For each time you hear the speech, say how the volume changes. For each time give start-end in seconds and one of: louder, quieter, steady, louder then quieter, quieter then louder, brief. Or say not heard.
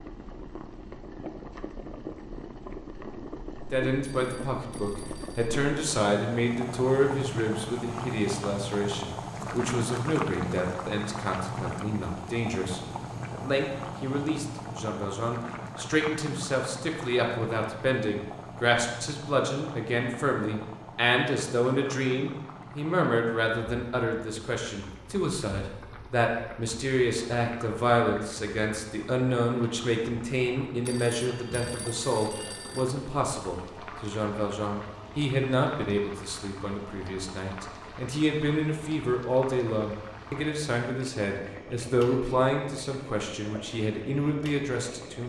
3.7-45.2 steady.